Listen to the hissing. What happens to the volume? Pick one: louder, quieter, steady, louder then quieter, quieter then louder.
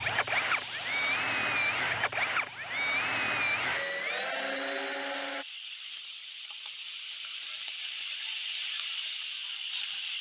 quieter then louder.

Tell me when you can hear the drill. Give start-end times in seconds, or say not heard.
0.0-5.5.